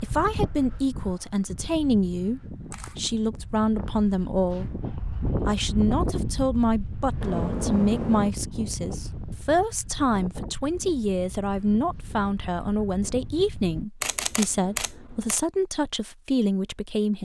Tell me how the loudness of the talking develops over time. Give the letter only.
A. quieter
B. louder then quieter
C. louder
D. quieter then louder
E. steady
E.